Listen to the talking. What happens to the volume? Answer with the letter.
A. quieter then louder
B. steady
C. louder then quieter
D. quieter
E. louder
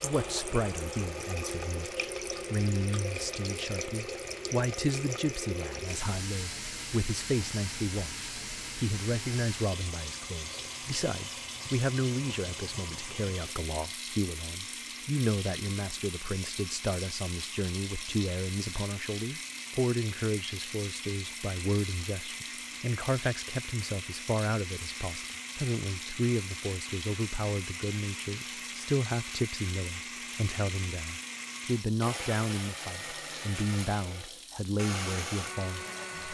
B.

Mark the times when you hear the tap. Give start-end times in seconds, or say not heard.
0.0-36.2.